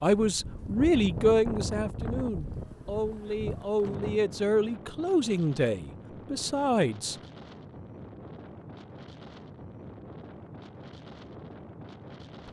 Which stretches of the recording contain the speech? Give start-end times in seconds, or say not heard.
0.0-7.2.